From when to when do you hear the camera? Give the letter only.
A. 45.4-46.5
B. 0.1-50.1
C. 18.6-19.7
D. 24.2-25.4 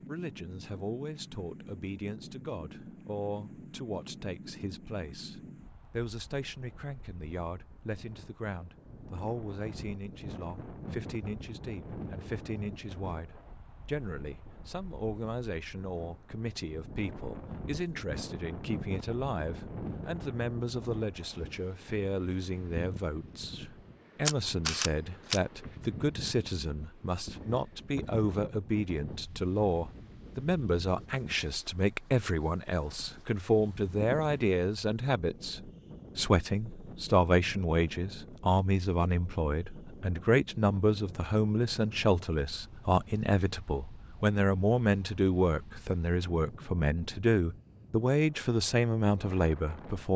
D.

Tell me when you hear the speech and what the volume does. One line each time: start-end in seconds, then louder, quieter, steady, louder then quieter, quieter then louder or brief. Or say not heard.
0.1-50.1 louder.